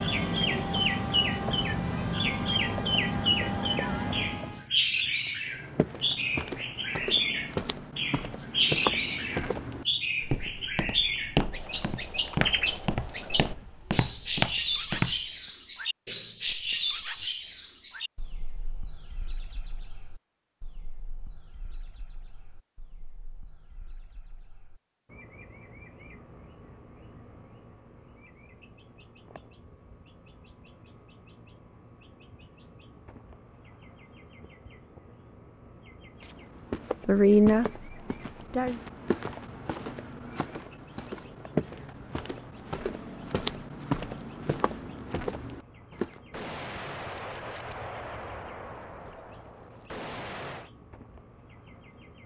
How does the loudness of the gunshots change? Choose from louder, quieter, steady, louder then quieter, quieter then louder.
quieter then louder.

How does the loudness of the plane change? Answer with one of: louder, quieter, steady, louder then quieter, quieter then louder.
steady.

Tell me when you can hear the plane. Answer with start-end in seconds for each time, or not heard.
0.0-4.7.